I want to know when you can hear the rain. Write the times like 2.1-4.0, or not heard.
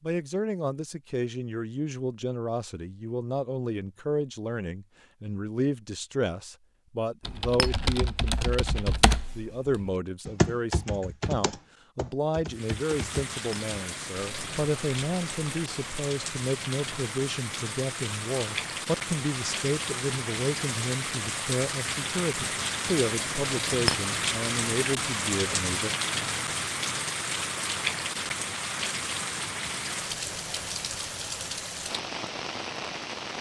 12.4-33.3.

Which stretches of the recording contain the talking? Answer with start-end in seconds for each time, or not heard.
0.0-25.9.